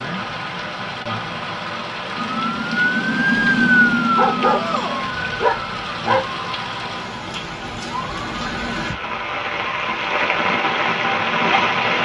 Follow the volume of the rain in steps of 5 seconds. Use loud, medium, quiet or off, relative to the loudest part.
medium, medium, loud.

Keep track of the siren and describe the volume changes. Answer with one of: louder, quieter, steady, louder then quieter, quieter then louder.
quieter.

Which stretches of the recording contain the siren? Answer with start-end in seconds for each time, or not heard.
2.1-10.1.